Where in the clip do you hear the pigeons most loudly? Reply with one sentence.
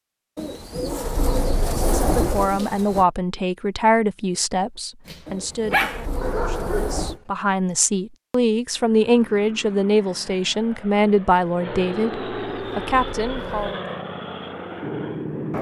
The volume of the pigeons peaks at 2 seconds.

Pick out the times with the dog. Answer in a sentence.
The dog can be heard from 5.0 to 7.0 s.